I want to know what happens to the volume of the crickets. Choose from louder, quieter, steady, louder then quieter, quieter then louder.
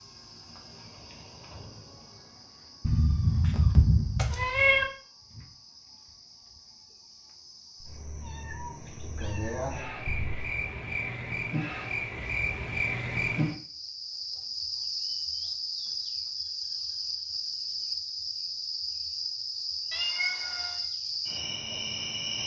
louder.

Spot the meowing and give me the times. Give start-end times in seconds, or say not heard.
2.9-4.8, 7.8-10.4, 19.9-20.9.